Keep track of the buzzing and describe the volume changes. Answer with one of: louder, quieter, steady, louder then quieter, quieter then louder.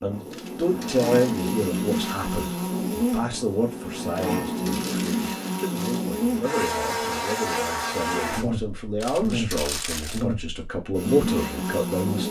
steady.